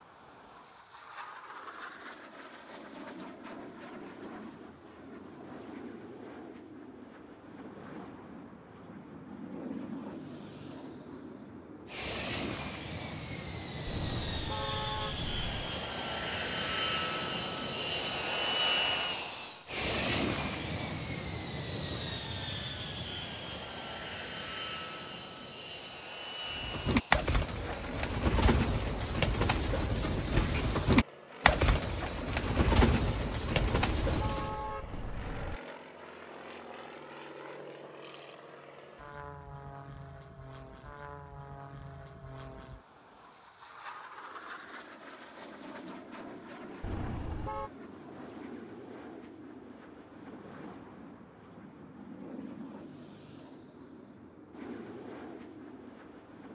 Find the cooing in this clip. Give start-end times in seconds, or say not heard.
26.5-34.7.